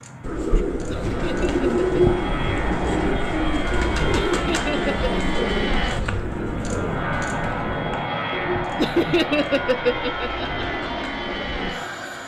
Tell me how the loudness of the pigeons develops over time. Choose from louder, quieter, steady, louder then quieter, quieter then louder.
quieter.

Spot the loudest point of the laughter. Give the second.
9 s.